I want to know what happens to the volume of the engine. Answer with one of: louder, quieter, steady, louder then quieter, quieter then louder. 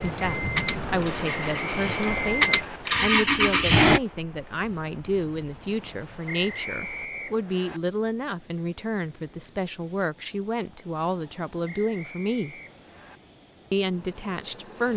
quieter then louder.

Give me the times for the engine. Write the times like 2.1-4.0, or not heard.
0.0-4.0.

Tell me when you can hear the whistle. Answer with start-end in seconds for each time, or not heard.
1.3-2.8, 6.2-7.8, 11.7-13.2.